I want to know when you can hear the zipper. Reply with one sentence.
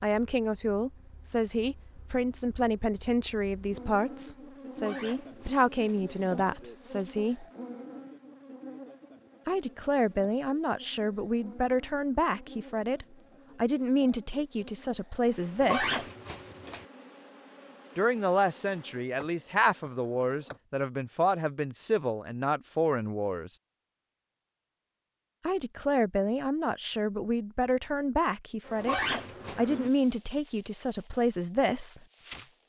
The zipper can be heard from 4.8 to 6.0 s, from 15.6 to 16.9 s and from 28.8 to 29.6 s.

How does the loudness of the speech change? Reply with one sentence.
The loudness of the speech stays about the same.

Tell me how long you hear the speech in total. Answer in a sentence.
You can hear the speech for 26 seconds altogether.